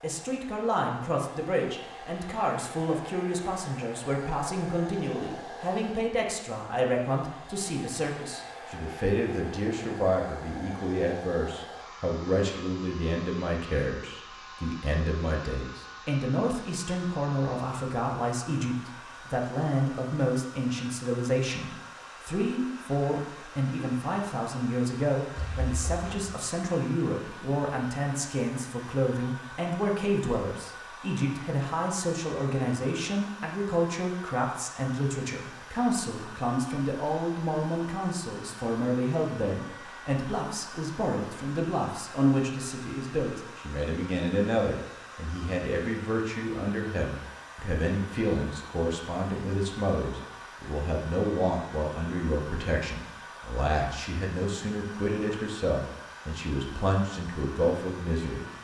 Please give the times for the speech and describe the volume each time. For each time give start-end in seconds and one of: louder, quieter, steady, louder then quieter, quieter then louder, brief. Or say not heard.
0.0-58.5 steady.